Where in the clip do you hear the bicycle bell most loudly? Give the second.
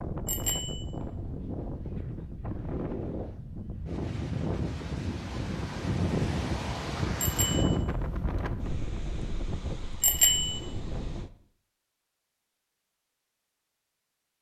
10 s.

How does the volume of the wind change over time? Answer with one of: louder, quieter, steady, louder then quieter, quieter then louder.
louder then quieter.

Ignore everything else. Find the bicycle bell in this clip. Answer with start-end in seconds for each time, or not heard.
0.2-0.8, 7.2-7.8, 10.0-10.6.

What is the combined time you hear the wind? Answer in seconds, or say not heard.
11 s.